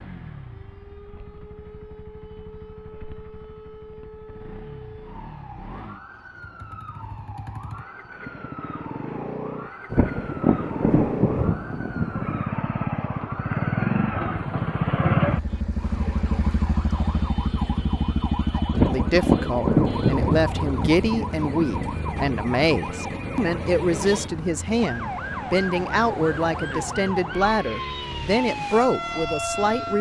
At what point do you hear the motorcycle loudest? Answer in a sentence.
The loudest moment of the motorcycle is at 15 seconds.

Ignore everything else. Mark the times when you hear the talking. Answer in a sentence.
The talking can be heard from 18.6 to 29.9 s.